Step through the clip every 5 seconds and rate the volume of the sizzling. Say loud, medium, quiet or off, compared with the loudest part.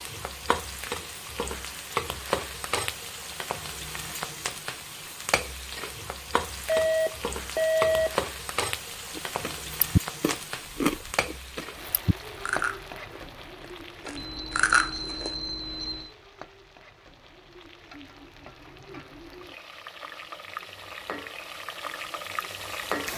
loud, loud, medium, quiet, loud.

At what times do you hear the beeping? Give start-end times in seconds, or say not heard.
6.7-8.2, 14.2-16.1.